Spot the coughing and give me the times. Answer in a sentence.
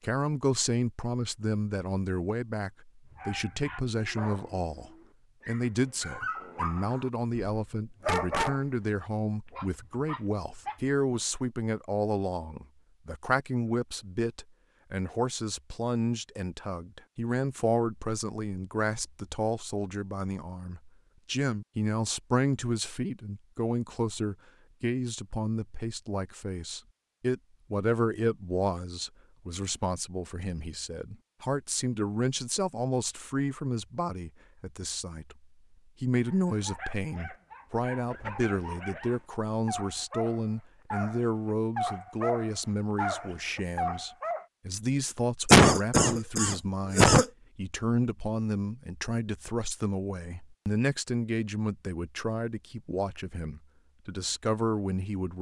The coughing can be heard from 45.5 to 47.2 s.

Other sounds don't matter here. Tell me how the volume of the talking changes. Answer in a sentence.
The volume of the talking stays about the same.